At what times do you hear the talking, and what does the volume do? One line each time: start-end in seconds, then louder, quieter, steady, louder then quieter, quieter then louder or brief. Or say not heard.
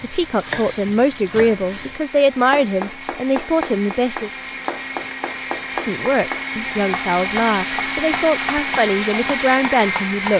0.0-4.3 steady
5.8-10.3 steady.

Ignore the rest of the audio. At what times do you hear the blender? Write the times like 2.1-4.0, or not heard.
0.0-10.3.